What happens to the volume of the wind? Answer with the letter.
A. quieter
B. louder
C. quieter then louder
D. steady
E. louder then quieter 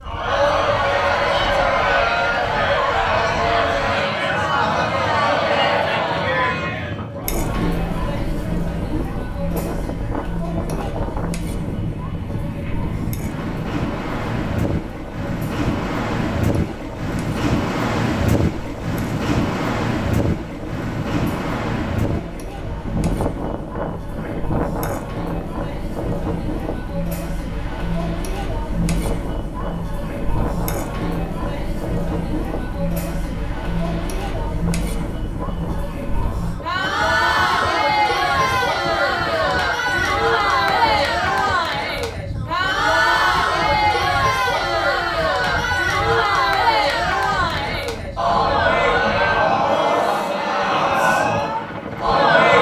E.